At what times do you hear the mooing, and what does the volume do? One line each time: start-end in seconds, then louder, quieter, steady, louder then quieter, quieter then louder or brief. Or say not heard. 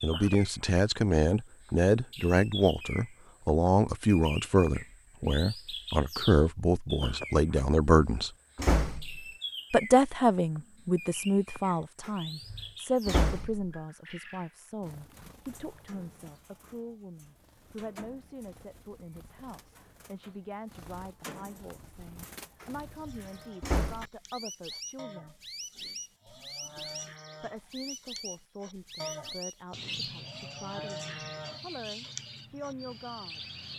22.9-33.0 louder.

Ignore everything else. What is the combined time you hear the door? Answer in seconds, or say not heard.
5 s.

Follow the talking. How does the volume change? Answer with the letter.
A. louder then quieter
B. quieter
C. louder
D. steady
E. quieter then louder
B.